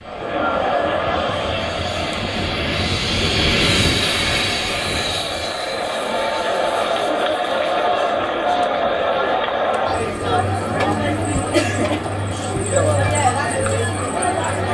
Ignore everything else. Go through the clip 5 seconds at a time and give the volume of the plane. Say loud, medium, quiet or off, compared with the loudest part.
loud, medium, medium.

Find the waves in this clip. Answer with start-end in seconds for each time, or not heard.
not heard.